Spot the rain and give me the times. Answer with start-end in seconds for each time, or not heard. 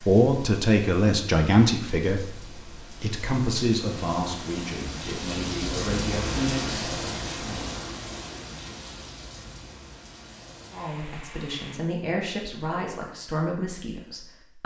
0.0-11.8.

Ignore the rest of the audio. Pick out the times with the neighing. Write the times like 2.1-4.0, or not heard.
not heard.